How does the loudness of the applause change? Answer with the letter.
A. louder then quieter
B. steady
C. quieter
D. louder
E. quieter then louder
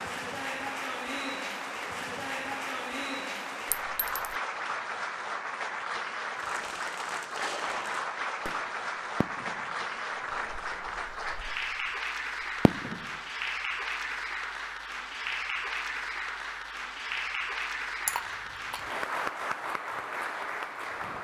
B.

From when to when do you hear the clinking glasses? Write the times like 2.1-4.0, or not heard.
3.7-4.3, 18.1-19.1.